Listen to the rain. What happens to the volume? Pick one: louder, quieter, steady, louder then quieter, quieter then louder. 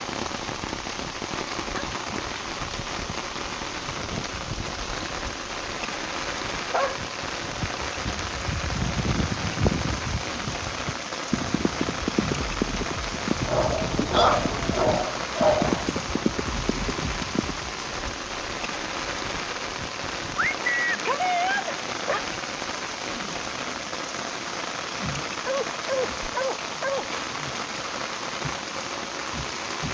steady.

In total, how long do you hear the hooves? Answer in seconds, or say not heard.
10 s.